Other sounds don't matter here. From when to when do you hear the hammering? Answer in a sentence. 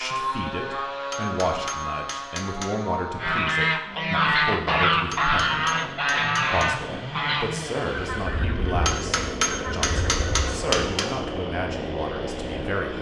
The hammering can be heard from 1.1 to 2.8 s, from 5.1 to 6.8 s and from 8.8 to 11.1 s.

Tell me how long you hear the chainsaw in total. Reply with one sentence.
You can hear the chainsaw for 13 seconds altogether.